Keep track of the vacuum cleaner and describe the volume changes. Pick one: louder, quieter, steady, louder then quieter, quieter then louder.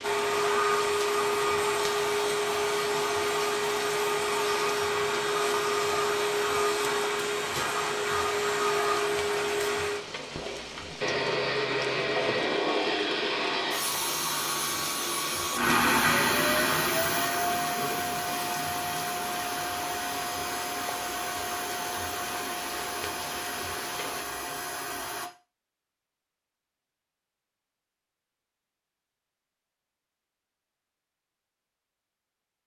quieter.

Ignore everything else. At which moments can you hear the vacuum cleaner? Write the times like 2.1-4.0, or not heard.
0.0-25.3.